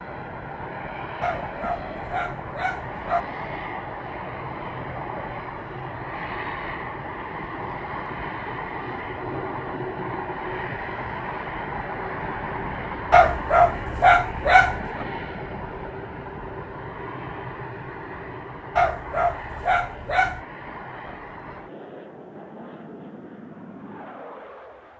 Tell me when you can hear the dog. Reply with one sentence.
You can hear the dog from 1.2 to 3.2 s, from 13.1 to 15.1 s and from 18.8 to 20.4 s.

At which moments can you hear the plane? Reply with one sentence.
You can hear the plane from 0.0 to 24.9 s.